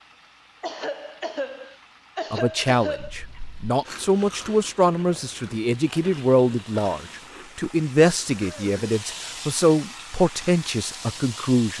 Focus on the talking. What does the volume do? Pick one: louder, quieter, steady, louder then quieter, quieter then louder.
steady.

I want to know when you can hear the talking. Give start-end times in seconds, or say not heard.
2.3-11.7.